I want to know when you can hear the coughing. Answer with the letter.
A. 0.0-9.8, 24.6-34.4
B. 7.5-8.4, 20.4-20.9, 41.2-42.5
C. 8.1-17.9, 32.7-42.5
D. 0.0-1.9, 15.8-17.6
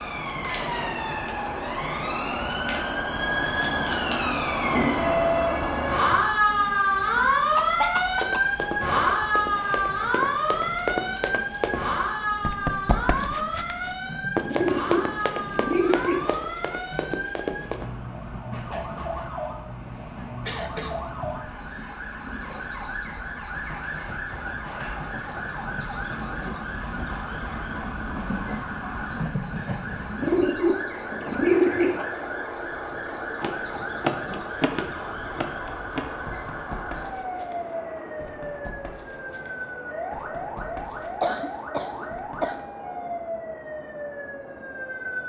B.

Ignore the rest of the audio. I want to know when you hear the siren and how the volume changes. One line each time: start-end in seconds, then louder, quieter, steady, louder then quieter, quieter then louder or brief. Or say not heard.
0.0-45.2 quieter.